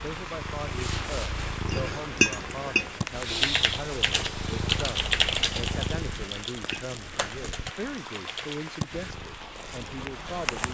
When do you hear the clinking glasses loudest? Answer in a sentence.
The loudest moment of the clinking glasses is at 2 seconds.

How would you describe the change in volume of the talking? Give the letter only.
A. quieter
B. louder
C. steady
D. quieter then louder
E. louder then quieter
C.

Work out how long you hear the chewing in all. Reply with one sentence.
You can't hear the chewing here.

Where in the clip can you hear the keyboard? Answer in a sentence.
You can hear the keyboard from 3.1 to 8.8 s.